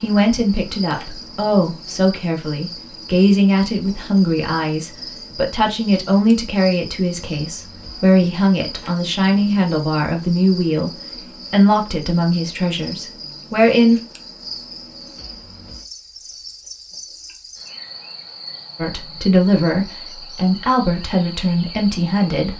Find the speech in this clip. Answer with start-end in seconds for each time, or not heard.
0.0-10.9, 11.5-14.0, 18.8-22.5.